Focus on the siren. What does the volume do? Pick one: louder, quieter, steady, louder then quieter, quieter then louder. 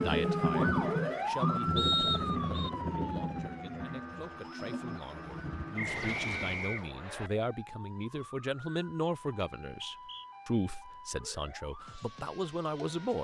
quieter.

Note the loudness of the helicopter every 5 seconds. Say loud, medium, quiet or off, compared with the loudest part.
loud, medium, off.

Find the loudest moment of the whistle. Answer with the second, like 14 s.
2 s.